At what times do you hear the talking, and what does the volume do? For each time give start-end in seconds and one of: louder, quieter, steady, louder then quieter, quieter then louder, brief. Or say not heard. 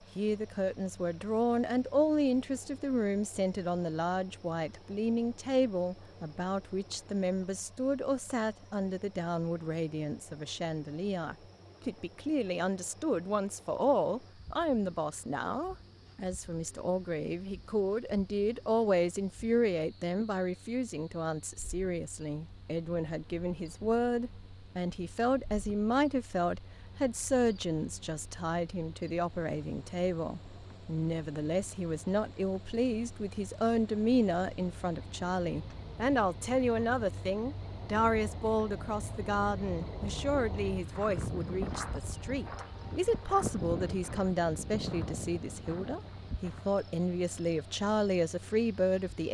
0.1-49.2 steady.